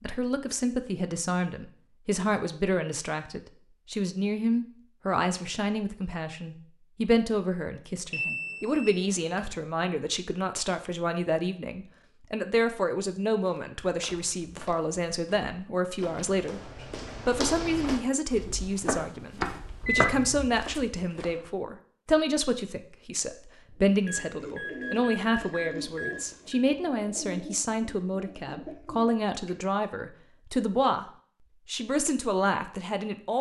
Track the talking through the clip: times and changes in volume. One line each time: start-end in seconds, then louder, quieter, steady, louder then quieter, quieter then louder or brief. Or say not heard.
0.0-33.3 steady.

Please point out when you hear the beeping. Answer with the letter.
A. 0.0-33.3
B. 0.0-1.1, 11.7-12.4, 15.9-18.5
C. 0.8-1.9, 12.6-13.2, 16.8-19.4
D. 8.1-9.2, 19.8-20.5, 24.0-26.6
D.